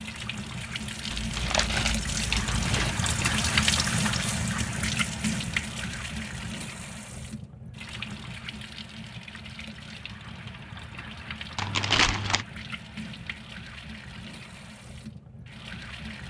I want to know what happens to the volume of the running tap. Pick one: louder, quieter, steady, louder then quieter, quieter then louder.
quieter.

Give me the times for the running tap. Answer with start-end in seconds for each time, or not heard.
0.0-16.2.